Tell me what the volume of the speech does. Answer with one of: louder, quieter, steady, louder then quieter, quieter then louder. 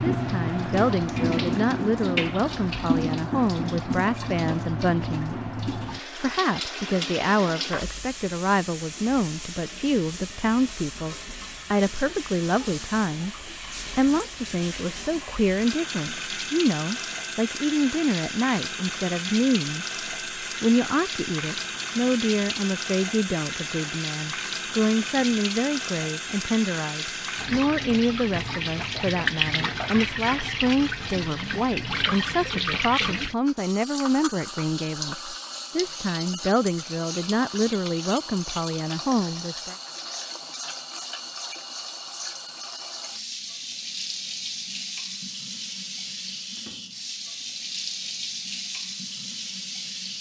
steady.